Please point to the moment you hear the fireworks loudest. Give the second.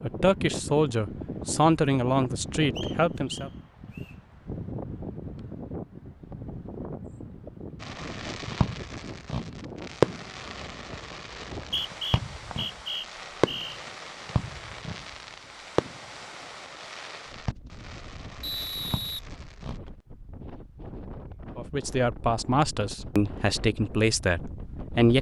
10 s.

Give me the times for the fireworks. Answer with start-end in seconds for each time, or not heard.
7.8-19.8.